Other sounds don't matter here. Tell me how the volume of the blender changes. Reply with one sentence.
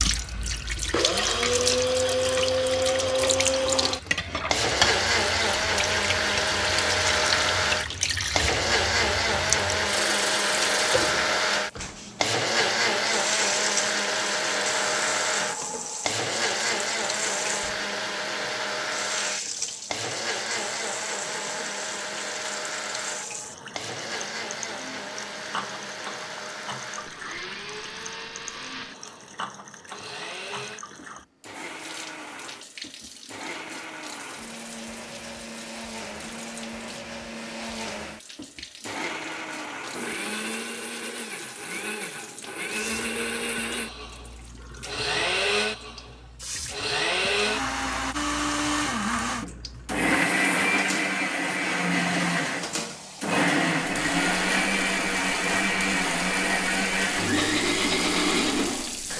The loudness of the blender goes down, then up.